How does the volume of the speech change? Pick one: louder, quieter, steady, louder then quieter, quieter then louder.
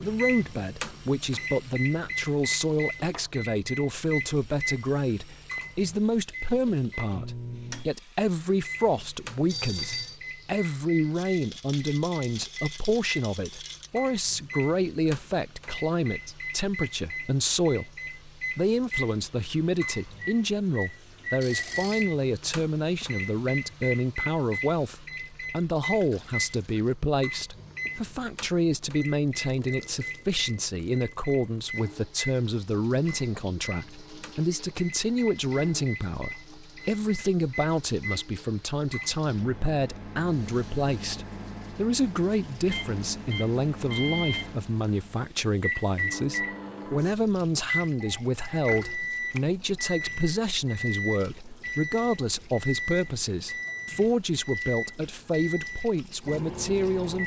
steady.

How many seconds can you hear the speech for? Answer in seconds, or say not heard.
57 s.